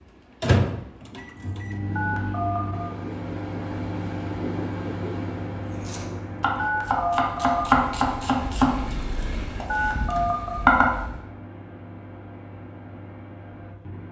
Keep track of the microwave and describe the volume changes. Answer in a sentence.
The volume of the microwave goes down.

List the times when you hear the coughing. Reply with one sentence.
You can't hear the coughing here.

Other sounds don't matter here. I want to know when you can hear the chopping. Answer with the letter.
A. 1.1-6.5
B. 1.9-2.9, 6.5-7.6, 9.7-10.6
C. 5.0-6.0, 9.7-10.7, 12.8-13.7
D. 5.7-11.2
D.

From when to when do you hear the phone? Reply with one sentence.
You can hear the phone from 1.9 to 2.9 s, from 6.5 to 7.6 s and from 9.7 to 10.6 s.